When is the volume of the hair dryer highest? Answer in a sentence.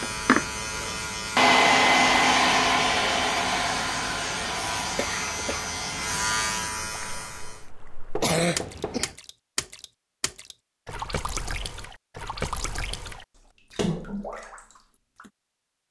The volume of the hair dryer peaks at 2 seconds.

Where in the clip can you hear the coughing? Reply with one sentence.
You can hear the coughing from 5.0 to 5.7 s and from 8.2 to 9.2 s.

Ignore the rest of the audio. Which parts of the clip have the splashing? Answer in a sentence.
You can hear the splashing from 7.0 to 15.3 s.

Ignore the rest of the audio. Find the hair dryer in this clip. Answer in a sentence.
The hair dryer can be heard from 0.0 to 6.5 s.